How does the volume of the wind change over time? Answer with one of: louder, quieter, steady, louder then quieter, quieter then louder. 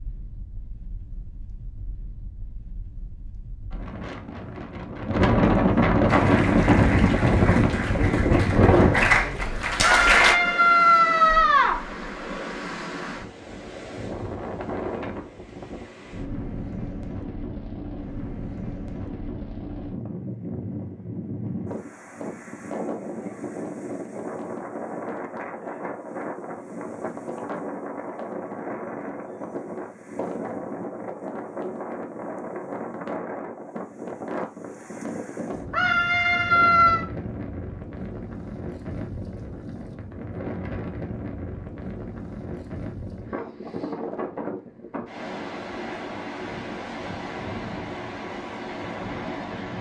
quieter.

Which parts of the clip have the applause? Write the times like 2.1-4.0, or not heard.
6.0-10.3.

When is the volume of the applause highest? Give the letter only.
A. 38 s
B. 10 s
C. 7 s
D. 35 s
B.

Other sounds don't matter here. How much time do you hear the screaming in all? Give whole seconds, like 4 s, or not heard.
3 s.